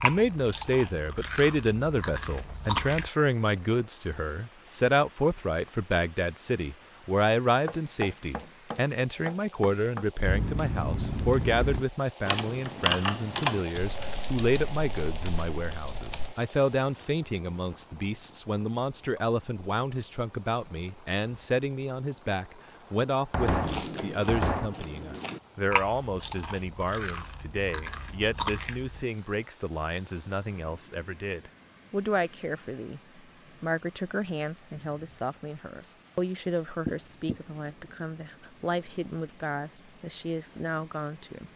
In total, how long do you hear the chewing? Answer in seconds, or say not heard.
9 s.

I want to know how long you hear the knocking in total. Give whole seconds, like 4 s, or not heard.
4 s.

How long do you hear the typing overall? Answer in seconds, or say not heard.
6 s.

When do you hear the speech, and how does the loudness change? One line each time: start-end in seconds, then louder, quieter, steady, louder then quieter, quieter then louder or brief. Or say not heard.
0.0-41.5 quieter.